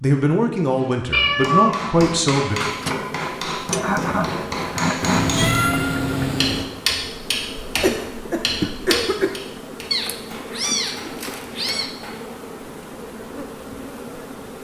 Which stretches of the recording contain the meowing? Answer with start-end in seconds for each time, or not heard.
1.1-1.9, 5.0-6.7, 9.9-11.9.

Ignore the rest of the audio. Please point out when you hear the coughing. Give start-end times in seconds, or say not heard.
3.8-5.3, 7.8-9.4.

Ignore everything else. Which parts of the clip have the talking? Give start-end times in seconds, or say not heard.
0.0-2.6.